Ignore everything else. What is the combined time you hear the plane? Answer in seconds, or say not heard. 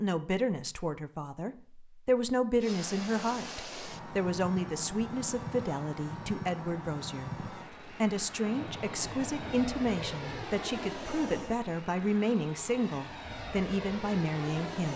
12 s.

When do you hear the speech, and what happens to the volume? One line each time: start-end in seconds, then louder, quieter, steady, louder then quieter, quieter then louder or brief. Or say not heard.
0.0-14.9 steady.